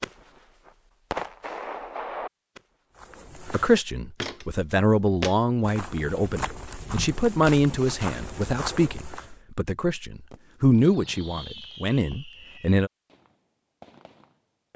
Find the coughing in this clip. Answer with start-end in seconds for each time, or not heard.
not heard.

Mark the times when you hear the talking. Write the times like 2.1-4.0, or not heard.
3.5-12.9.